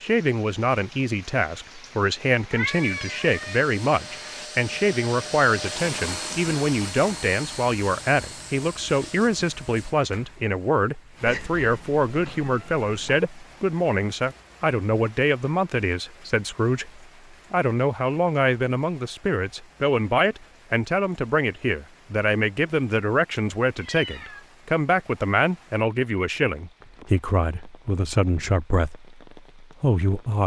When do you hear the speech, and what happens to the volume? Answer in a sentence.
You can hear the speech from 0.0 to 30.4 s, at a steady volume.